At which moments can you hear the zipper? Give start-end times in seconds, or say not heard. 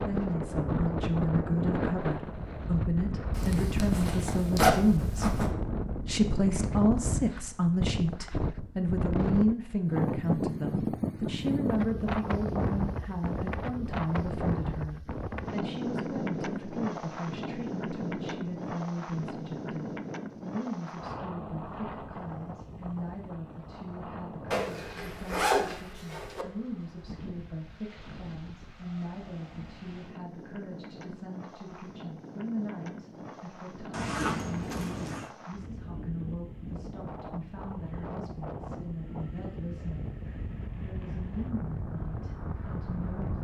3.4-5.5, 24.5-26.4, 33.9-35.3.